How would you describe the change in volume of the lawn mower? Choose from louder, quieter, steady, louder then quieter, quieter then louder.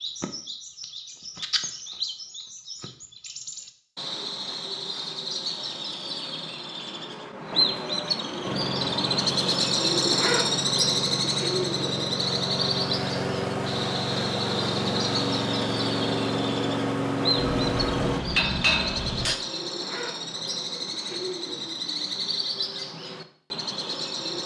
louder.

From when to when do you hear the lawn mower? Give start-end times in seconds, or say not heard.
8.4-18.2.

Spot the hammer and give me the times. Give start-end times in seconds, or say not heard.
17.4-19.4.